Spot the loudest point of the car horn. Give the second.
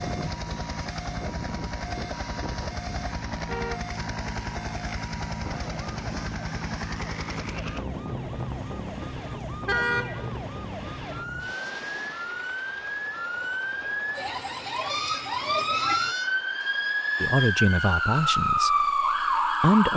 10 s.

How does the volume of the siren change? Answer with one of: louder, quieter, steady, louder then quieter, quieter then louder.
louder.